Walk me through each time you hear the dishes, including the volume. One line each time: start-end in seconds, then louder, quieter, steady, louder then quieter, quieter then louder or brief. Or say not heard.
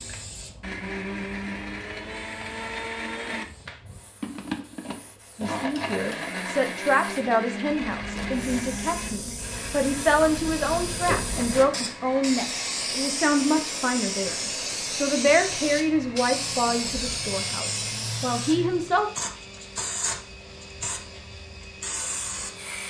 not heard.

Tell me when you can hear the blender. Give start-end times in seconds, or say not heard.
0.0-22.8.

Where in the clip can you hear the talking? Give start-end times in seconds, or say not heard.
5.3-19.1.